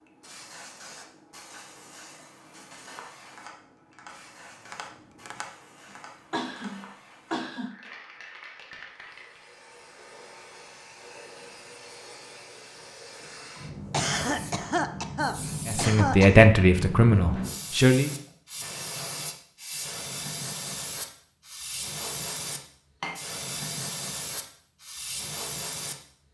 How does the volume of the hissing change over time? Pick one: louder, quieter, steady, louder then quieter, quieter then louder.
louder.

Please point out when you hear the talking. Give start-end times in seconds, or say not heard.
15.7-18.1.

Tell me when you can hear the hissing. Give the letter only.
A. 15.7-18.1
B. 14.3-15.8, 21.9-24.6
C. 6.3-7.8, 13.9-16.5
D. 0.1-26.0
D.